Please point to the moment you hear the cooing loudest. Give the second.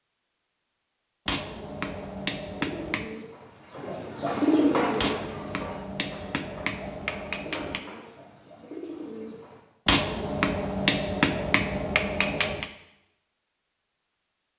5 s.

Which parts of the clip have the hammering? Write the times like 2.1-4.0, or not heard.
1.2-3.1, 5.0-7.8, 9.8-12.7.